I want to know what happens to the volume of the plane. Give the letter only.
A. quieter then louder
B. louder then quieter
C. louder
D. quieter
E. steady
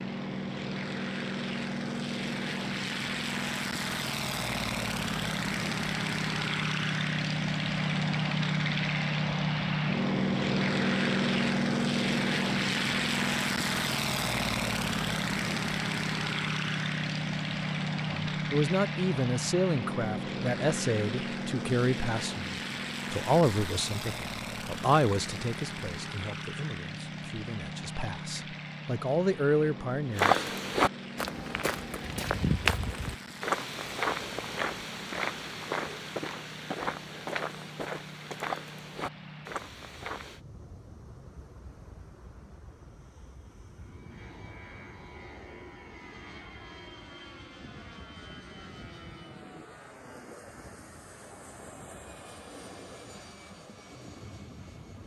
D.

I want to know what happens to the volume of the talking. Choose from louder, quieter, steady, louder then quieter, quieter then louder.
quieter then louder.